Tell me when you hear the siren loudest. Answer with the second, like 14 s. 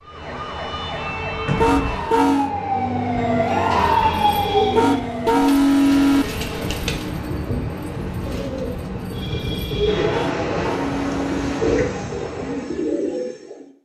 4 s.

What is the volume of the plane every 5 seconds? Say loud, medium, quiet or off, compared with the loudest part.
off, loud, loud.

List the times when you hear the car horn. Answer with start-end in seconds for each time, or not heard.
1.6-2.5, 4.8-6.2, 10.1-11.6.